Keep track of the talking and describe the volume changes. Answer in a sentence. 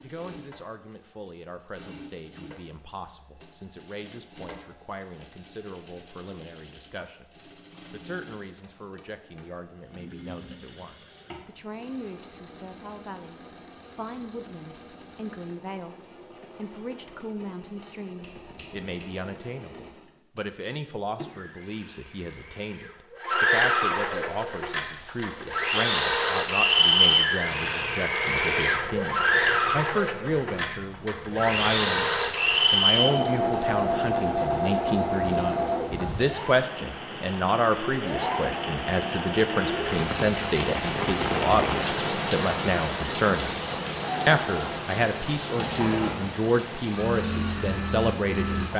The loudness of the talking goes up.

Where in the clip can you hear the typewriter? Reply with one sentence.
The typewriter can't be heard in this clip.